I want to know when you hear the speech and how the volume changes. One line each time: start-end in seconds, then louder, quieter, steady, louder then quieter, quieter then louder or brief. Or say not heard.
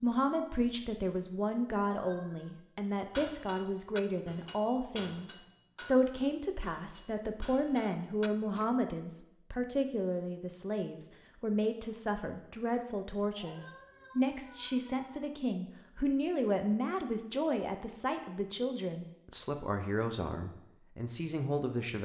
0.0-22.0 steady.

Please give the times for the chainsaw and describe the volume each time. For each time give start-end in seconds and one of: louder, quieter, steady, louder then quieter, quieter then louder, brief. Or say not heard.
not heard.